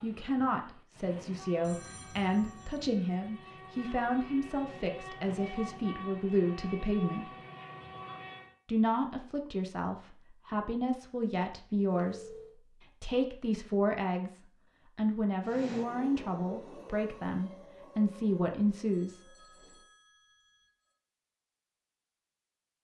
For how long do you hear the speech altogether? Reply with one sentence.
The speech can be heard for 18 seconds in total.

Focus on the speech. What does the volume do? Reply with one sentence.
The volume of the speech stays about the same.